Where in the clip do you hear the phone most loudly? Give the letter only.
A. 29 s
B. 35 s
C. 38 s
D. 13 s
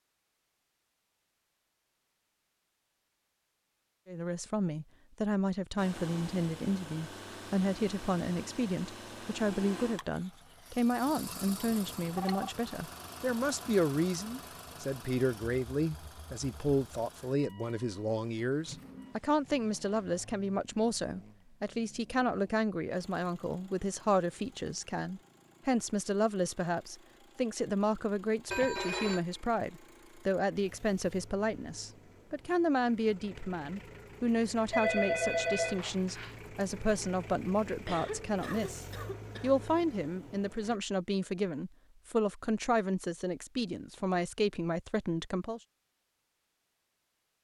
B.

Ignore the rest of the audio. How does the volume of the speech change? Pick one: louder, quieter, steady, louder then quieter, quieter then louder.
steady.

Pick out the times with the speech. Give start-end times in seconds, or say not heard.
4.0-45.6.